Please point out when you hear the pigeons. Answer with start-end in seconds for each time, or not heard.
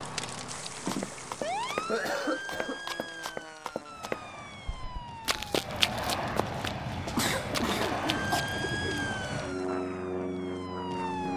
7.5-9.4.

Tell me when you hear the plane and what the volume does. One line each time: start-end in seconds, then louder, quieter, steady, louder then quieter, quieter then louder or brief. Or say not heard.
0.0-11.3 louder.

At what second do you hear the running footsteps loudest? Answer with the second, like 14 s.
6 s.